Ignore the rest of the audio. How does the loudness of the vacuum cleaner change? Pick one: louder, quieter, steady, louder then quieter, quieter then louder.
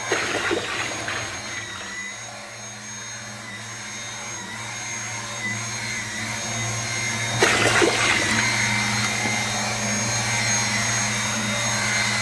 louder.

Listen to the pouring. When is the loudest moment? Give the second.
8 s.